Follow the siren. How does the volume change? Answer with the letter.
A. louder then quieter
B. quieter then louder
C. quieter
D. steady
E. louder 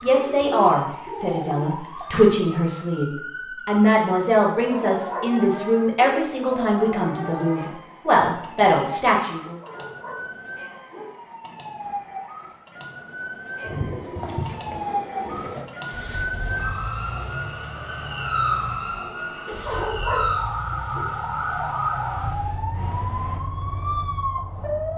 E.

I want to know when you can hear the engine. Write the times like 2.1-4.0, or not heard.
15.8-23.4.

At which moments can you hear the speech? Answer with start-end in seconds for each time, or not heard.
0.0-9.6.